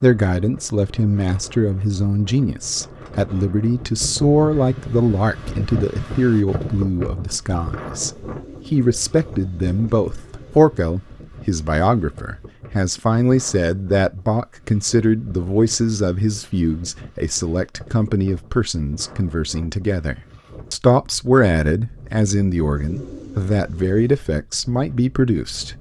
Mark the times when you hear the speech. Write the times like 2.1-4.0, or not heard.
0.0-25.7.